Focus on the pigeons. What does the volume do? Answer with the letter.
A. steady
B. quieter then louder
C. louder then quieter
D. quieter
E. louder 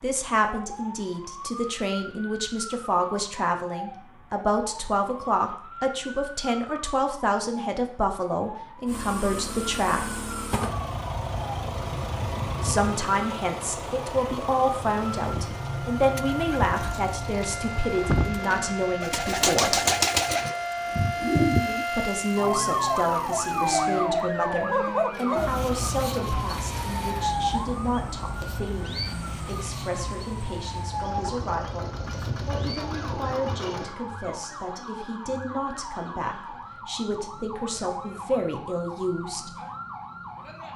B.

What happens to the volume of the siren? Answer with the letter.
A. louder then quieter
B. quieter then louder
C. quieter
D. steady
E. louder
A.